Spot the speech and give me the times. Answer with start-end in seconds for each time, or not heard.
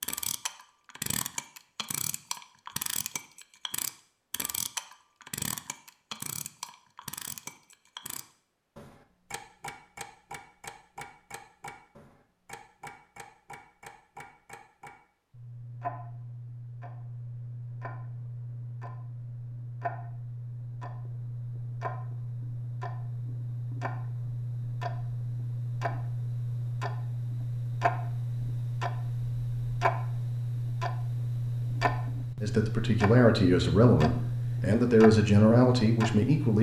32.4-36.5.